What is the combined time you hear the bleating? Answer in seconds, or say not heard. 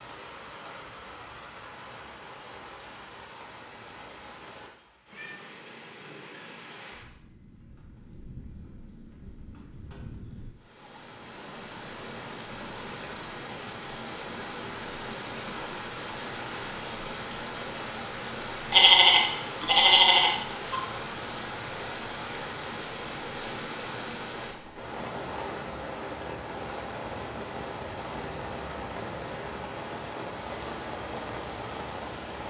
2 s.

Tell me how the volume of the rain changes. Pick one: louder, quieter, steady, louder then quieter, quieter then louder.
louder.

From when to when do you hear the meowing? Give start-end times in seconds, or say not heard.
5.1-5.5.